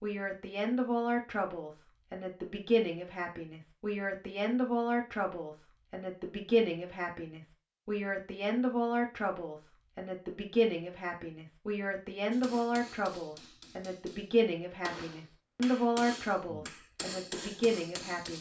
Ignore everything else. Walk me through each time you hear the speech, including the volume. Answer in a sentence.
The speech can be heard from 0.0 to 18.3 s, at a steady volume.